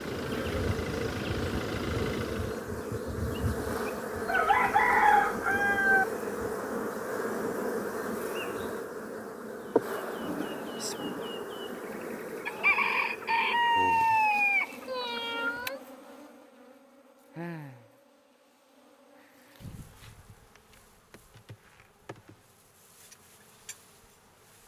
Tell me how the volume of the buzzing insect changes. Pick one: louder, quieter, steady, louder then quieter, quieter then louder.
quieter.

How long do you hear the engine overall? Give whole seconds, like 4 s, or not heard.
3 s.